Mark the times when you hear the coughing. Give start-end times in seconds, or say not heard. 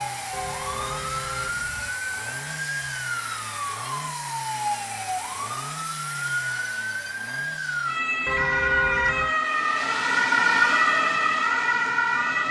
not heard.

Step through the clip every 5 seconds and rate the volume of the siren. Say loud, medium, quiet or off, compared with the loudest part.
medium, medium, loud.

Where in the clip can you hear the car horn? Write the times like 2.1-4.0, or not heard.
0.3-1.9, 8.2-9.3.